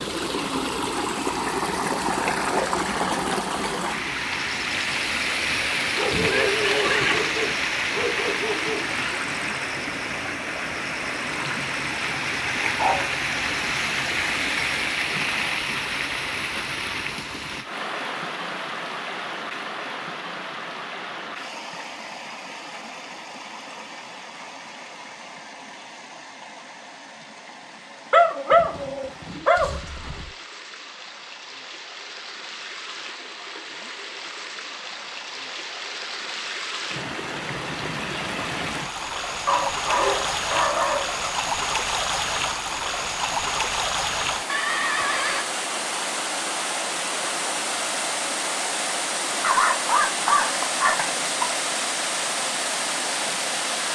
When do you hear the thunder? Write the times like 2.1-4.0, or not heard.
not heard.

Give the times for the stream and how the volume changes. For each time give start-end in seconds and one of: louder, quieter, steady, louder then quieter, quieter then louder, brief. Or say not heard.
0.0-53.9 quieter then louder.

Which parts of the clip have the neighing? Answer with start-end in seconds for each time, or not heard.
5.5-7.2, 28.5-30.4, 44.5-45.5.